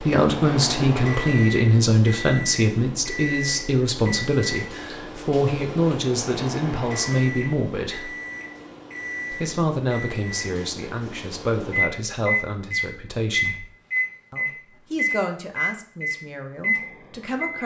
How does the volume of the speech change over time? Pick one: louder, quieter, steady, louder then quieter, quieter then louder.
quieter.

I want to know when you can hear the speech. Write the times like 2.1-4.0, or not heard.
0.0-8.1, 9.3-13.7, 14.3-17.6.